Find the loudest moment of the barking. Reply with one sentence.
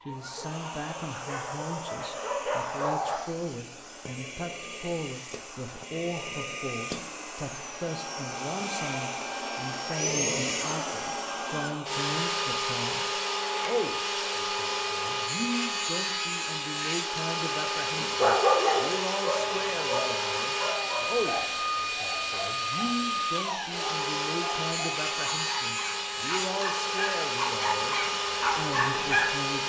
The loudest moment of the barking is at 18 seconds.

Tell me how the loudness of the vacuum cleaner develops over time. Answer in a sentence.
The loudness of the vacuum cleaner goes up.